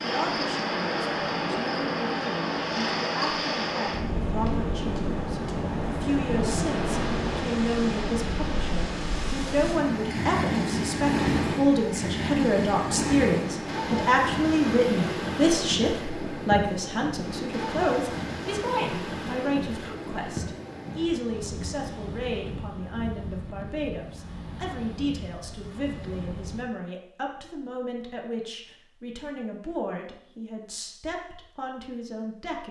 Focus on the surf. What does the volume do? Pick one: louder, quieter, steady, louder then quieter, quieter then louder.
quieter.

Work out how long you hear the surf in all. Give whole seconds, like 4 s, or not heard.
27 s.